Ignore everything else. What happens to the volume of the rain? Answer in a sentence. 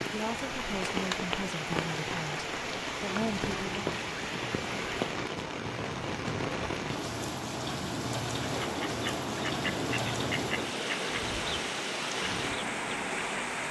The volume of the rain stays about the same.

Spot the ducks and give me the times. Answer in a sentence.
The ducks can be heard from 8.4 to 13.4 s.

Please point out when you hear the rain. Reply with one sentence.
The rain can be heard from 0.0 to 13.6 s.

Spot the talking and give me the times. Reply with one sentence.
The talking can be heard from 0.1 to 3.8 s.